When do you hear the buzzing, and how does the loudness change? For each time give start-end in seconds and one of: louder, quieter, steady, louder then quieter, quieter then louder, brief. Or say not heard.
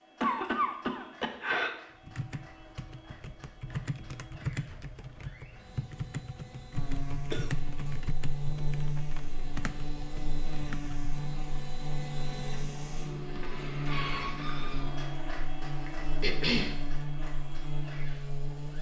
6.8-18.7 steady.